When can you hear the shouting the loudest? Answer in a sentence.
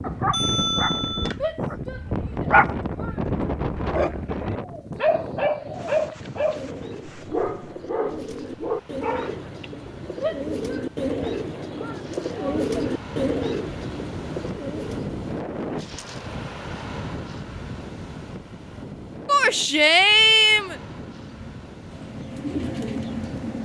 The loudest moment of the shouting is at 20 seconds.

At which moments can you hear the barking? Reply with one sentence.
The barking can be heard from 0.0 to 9.7 s.